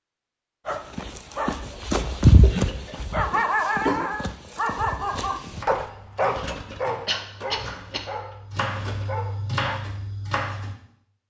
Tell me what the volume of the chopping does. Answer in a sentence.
The loudness of the chopping goes up.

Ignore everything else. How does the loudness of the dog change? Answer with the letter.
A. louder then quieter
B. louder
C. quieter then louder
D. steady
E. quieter
E.